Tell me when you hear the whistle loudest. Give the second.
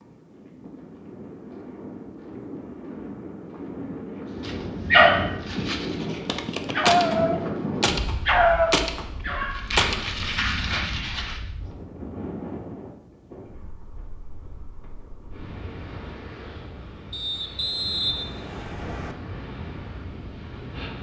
18 s.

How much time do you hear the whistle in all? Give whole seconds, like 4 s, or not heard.
2 s.